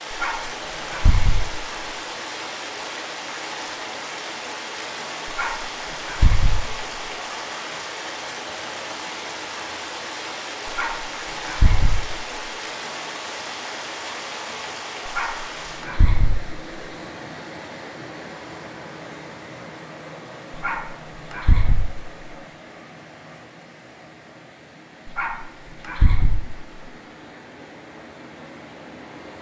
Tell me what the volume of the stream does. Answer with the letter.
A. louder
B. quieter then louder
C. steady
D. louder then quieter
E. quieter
E.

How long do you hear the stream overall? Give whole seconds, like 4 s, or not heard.
29 s.